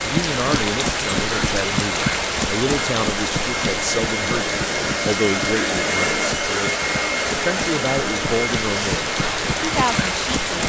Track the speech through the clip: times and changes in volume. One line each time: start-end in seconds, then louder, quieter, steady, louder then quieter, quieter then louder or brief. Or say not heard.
0.0-10.6 steady.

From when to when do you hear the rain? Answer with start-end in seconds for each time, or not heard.
0.0-10.6.